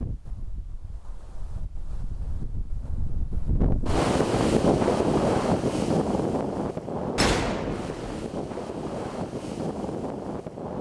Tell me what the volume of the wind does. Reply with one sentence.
The volume of the wind goes up, then down.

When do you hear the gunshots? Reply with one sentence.
The gunshots can be heard from 7.2 to 8.2 s.